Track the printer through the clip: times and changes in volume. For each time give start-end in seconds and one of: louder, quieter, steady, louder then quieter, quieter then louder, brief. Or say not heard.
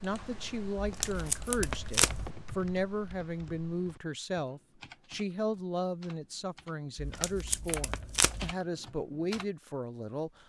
not heard.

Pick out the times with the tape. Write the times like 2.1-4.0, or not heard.
0.8-2.3, 7.0-8.6.